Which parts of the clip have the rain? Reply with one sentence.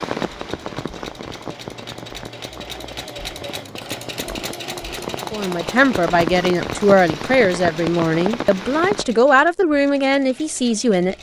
You can hear the rain from 0.0 to 9.1 s.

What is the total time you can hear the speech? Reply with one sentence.
You can hear the speech for 6 seconds altogether.